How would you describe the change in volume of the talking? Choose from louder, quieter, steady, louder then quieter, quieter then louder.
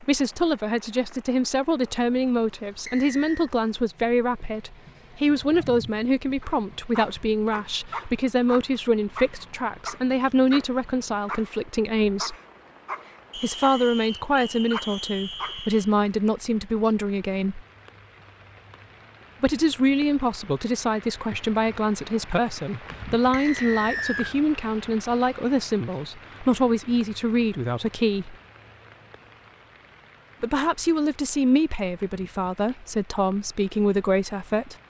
steady.